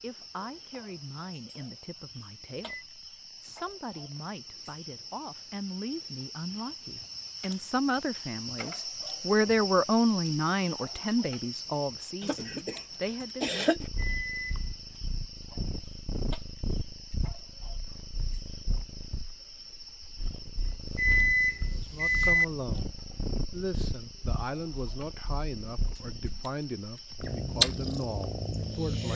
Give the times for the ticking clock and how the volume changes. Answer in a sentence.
You can't hear the ticking clock here.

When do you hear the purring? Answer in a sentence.
You can hear the purring from 13.8 to 29.1 s.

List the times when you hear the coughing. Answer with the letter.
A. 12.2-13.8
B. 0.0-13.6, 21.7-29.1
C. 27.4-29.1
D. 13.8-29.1
A.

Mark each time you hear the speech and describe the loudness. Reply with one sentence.
You can hear the speech from 0.0 to 13.6 s, getting louder then quieter; and from 21.7 to 29.1 s, at a steady volume.